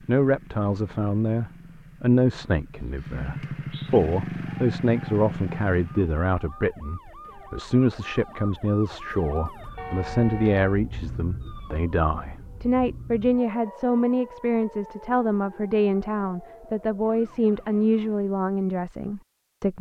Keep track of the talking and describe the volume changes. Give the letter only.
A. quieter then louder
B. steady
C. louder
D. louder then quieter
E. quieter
B.